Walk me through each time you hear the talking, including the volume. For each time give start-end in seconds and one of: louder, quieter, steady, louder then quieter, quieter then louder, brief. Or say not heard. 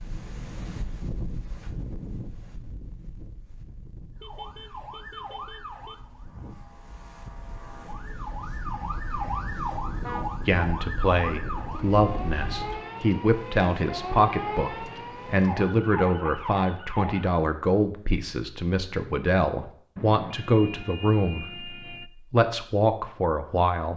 10.4-23.9 steady.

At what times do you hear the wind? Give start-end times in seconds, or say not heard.
0.0-12.8.